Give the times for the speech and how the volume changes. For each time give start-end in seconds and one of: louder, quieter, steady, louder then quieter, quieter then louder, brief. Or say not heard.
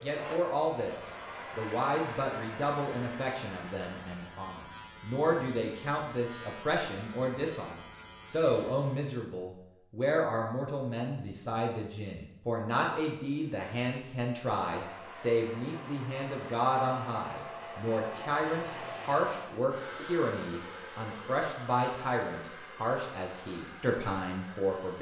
0.0-24.9 steady.